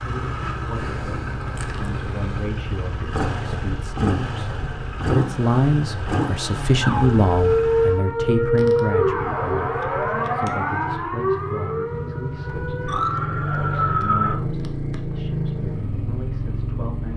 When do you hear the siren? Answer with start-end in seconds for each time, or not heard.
6.8-14.3.